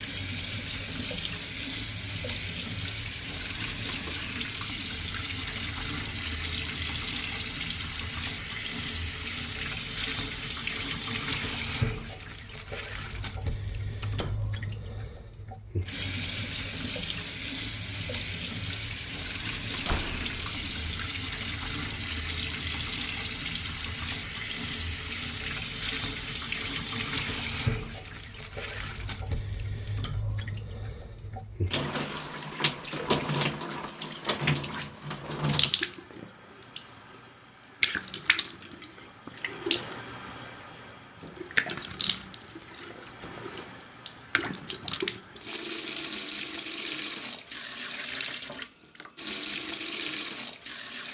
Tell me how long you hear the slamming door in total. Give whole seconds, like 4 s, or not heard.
2 s.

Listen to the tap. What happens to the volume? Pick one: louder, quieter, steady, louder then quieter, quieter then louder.
steady.